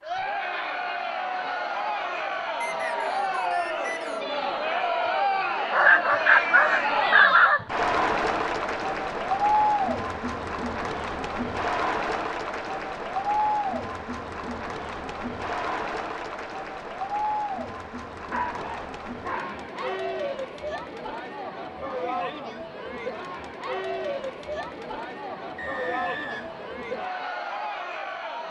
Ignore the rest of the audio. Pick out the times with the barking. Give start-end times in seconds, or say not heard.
5.7-7.6, 18.3-20.0.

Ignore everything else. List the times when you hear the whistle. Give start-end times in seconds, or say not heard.
2.6-4.2, 25.6-26.8.